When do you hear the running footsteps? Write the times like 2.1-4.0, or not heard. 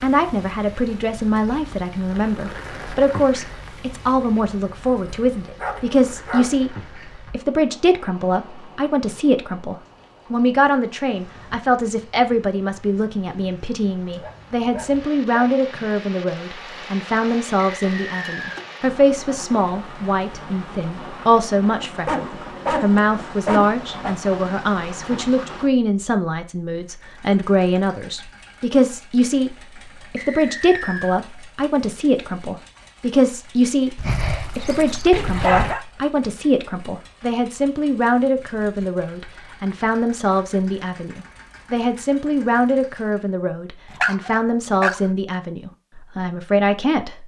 not heard.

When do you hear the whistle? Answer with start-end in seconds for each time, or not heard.
17.7-18.6, 30.1-31.2.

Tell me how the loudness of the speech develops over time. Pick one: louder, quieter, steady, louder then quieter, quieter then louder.
steady.